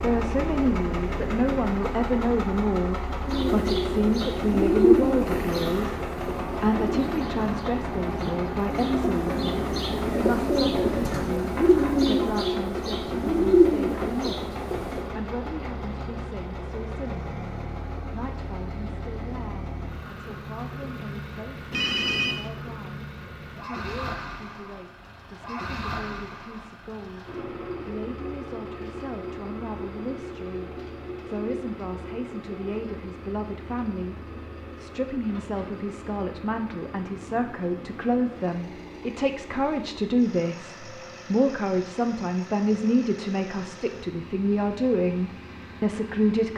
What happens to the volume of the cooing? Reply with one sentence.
The volume of the cooing goes down, then up.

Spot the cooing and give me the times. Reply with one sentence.
You can hear the cooing from 3.2 to 15.1 s.